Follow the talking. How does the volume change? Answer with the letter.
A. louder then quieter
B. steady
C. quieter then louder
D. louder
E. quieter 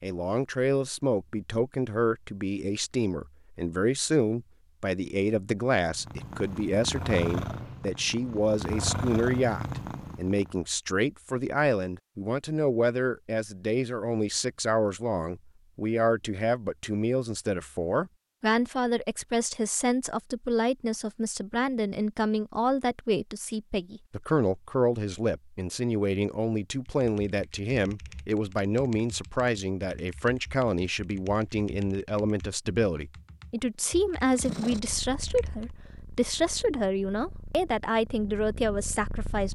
B.